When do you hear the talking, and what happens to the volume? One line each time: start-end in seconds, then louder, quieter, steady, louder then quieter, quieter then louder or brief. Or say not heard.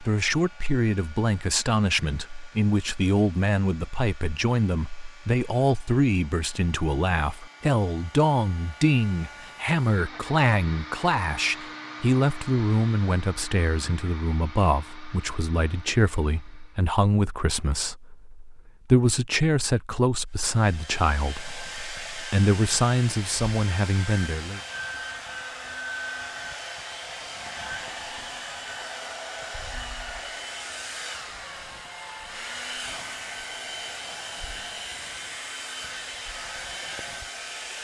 0.0-24.6 steady.